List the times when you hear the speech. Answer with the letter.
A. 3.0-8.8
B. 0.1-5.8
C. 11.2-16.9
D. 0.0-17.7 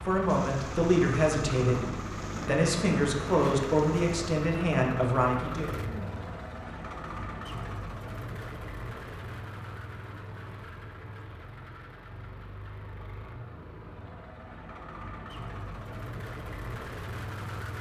B.